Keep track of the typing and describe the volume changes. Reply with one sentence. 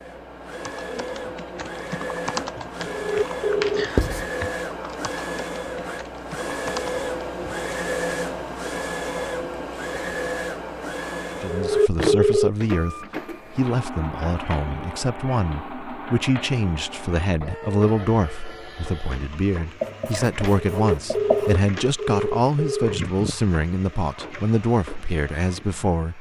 The loudness of the typing goes up, then down.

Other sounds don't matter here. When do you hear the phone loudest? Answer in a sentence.
The volume of the phone peaks at 12 seconds.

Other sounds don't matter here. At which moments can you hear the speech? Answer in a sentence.
The speech can be heard from 11.4 to 26.1 s.